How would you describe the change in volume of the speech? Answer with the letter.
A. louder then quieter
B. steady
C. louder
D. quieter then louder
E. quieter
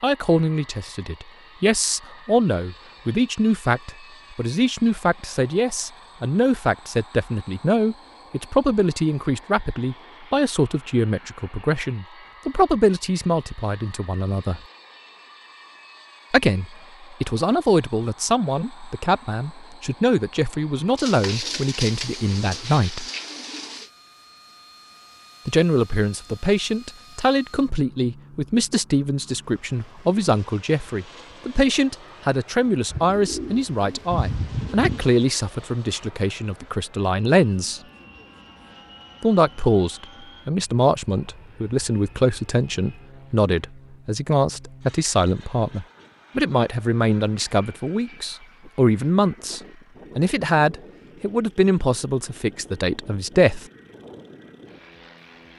B.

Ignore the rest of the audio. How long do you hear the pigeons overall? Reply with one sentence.
You can hear the pigeons for 5 seconds altogether.